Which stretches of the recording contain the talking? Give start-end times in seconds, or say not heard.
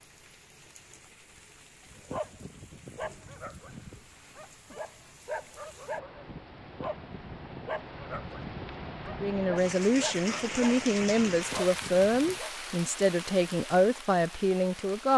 9.1-15.1.